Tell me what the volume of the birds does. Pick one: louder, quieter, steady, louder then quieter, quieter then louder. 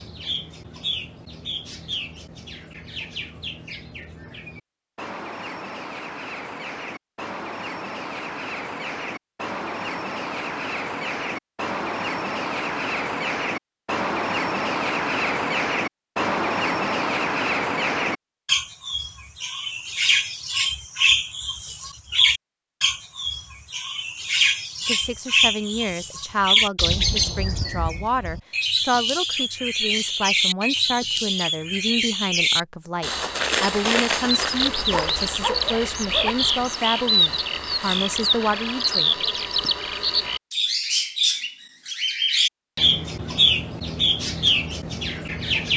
louder.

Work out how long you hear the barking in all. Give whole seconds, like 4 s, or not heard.
2 s.